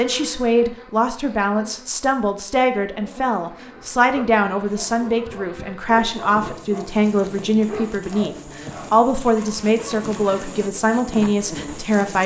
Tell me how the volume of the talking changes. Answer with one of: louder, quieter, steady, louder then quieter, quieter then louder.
steady.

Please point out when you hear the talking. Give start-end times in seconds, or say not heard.
0.0-12.2.